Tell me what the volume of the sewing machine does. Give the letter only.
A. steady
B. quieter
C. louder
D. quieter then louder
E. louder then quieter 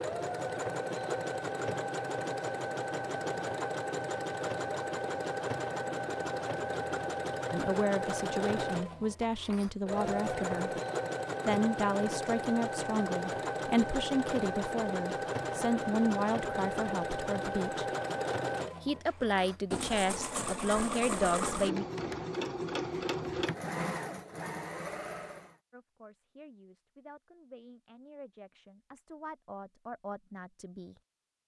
A.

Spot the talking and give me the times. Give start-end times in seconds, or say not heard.
7.5-10.7, 11.4-17.9, 18.8-21.9, 25.7-30.9.